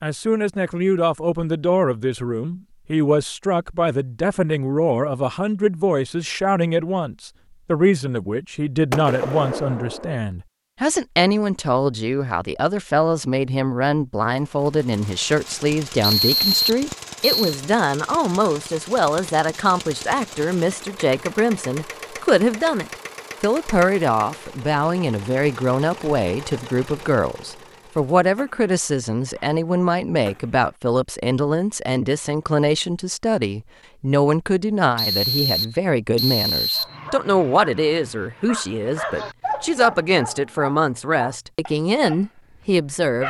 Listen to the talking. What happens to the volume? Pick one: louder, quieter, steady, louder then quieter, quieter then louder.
steady.